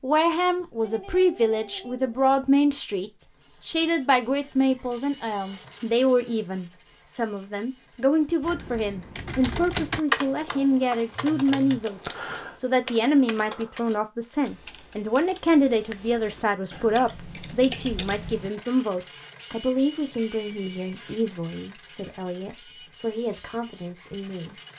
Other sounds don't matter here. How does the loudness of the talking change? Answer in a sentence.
The loudness of the talking goes down.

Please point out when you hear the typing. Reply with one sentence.
You can hear the typing from 8.4 to 18.5 s.